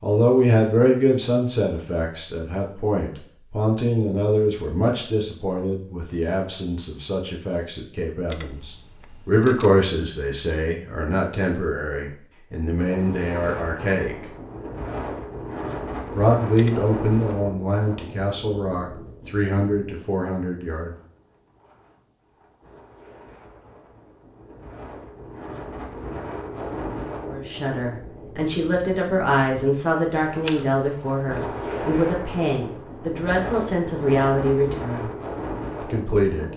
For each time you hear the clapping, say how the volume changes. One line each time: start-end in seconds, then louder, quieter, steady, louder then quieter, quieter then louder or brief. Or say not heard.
not heard.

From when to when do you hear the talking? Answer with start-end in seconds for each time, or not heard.
0.0-14.2, 16.1-20.9, 27.3-35.1, 35.8-36.5.